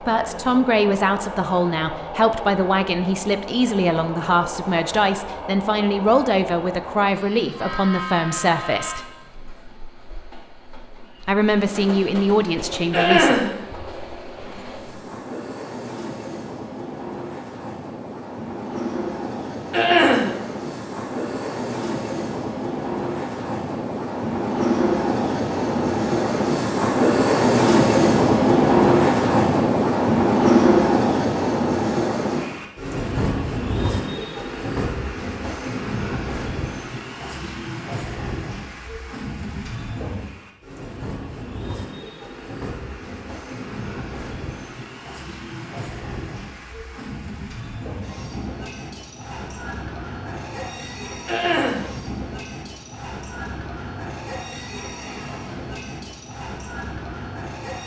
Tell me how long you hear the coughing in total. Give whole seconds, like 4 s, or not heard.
2 s.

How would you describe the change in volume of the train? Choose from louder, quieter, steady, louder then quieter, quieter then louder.
louder then quieter.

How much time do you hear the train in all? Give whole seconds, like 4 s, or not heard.
58 s.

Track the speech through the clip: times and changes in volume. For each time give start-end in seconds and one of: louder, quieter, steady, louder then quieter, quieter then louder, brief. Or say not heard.
0.0-9.1 steady
11.2-13.4 brief.